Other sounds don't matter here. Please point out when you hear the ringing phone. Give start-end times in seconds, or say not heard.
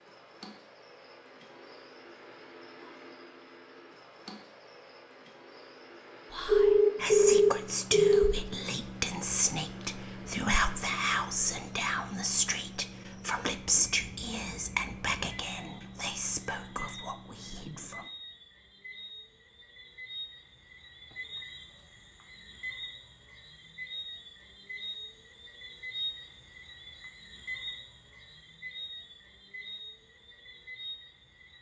6.5-8.3.